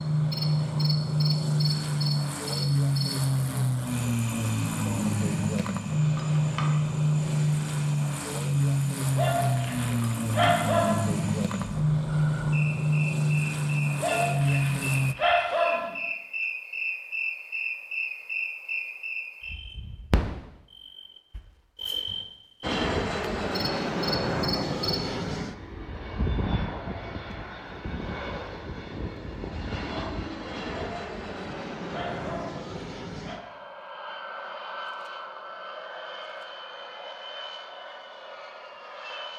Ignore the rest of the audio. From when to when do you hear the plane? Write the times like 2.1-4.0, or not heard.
0.0-15.2, 22.6-39.3.